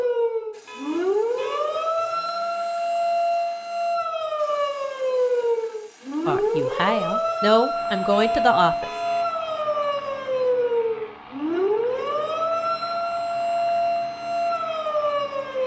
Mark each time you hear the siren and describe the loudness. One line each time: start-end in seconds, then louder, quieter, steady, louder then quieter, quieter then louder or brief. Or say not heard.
0.0-15.6 steady.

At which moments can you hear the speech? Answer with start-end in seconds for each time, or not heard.
6.2-8.8.